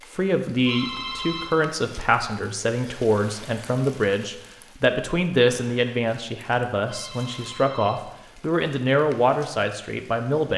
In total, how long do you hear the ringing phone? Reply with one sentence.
You can hear the ringing phone for 2 seconds altogether.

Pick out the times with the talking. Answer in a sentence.
The talking can be heard from 0.1 to 10.5 s.